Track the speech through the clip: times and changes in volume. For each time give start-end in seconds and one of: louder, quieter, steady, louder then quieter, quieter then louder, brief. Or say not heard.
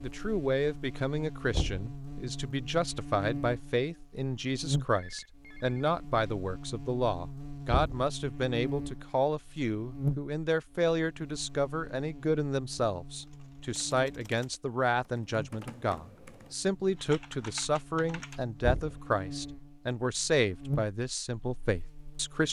0.0-22.4 steady.